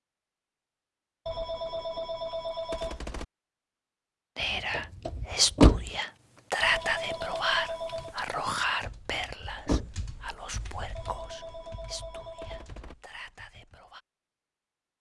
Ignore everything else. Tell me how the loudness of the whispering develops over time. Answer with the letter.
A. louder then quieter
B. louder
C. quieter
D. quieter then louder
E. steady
C.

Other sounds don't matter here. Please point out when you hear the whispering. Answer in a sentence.
You can hear the whispering from 4.3 to 14.0 s.